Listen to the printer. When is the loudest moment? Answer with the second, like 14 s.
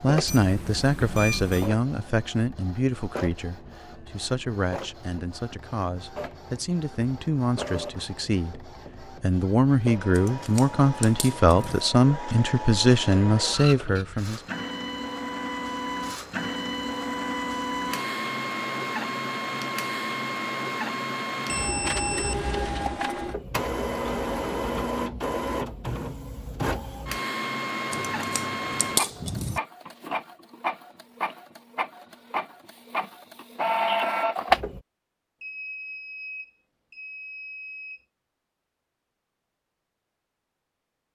34 s.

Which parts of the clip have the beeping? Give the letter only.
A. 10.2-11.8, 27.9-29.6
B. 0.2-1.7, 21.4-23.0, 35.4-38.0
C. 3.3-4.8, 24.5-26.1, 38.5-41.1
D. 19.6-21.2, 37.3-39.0
B.